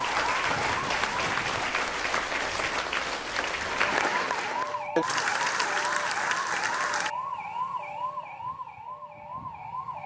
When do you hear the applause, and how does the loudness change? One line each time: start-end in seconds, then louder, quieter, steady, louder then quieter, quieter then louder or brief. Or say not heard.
0.0-7.1 steady.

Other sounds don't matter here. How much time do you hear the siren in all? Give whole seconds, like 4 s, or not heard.
8 s.